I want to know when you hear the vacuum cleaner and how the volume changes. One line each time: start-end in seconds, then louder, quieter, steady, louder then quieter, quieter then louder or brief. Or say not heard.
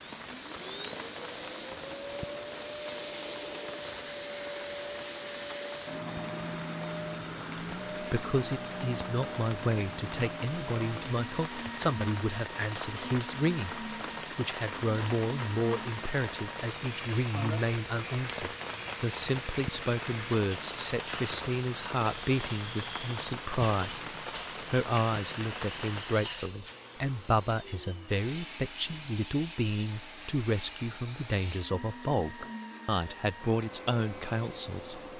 0.0-35.1 quieter.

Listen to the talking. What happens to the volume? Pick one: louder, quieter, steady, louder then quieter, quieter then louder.
steady.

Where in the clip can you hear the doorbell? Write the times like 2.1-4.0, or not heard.
not heard.